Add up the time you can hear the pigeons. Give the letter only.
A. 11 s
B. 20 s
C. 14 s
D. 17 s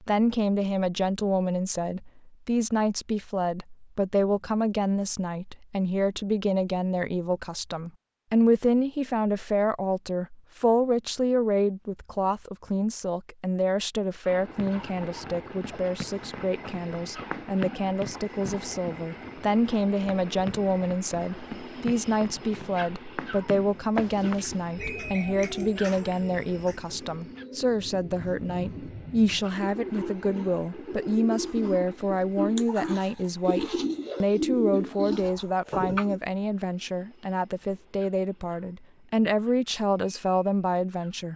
A.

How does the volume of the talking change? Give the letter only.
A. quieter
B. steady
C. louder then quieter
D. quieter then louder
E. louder
B.